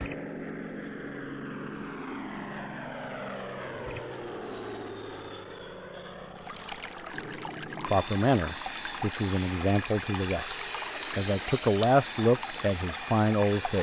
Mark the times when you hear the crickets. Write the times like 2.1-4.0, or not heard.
0.0-7.2.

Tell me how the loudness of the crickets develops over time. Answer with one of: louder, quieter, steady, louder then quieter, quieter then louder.
steady.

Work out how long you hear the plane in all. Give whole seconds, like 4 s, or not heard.
14 s.